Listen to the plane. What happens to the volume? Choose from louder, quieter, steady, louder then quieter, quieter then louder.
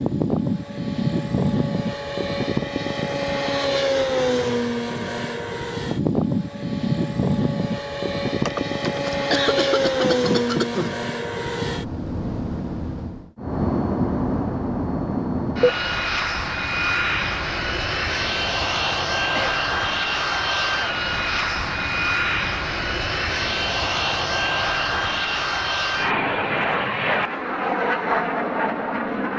steady.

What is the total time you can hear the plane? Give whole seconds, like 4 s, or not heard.
29 s.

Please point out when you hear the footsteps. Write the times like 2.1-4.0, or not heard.
not heard.